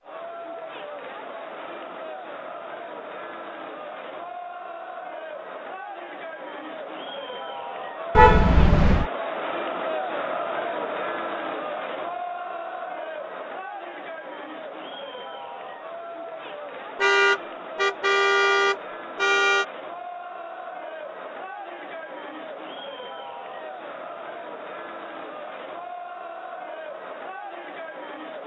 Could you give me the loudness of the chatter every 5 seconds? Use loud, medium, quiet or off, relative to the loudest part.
medium, loud, loud, medium, medium, medium.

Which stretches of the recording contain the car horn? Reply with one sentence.
You can hear the car horn from 8.2 to 9.1 s and from 16.9 to 19.6 s.